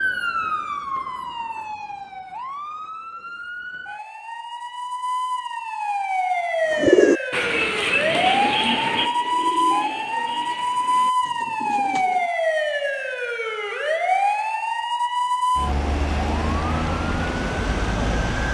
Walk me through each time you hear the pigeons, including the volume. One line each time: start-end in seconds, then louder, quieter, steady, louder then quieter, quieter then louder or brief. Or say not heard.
6.7-12.3 quieter.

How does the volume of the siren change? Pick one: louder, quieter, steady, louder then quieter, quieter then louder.
louder.